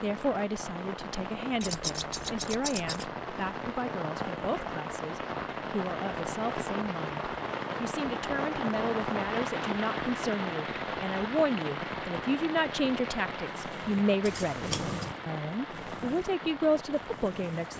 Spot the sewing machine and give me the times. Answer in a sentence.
You can hear the sewing machine from 13.4 to 17.7 s.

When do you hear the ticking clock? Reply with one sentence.
The ticking clock can't be heard in this clip.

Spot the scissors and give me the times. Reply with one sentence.
The scissors can be heard from 1.6 to 3.1 s and from 14.2 to 15.1 s.